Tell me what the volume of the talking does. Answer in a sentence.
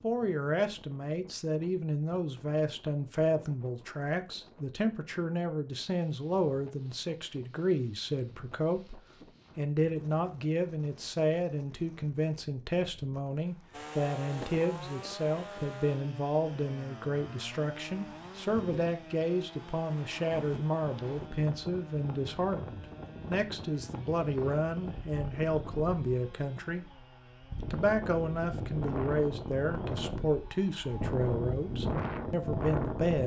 The volume of the talking stays about the same.